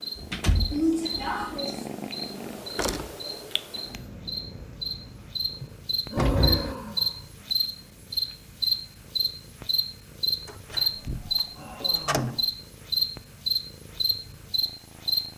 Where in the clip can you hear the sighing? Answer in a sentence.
The sighing can be heard from 0.7 to 1.9 s, from 5.6 to 7.2 s and from 11.6 to 12.4 s.